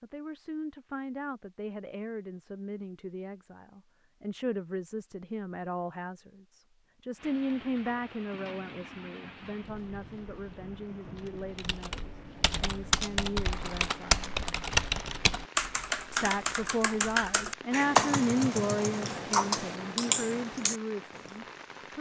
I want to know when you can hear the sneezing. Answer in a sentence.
You can't hear the sneezing here.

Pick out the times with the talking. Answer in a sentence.
The talking can be heard from 0.0 to 14.3 s and from 16.1 to 21.9 s.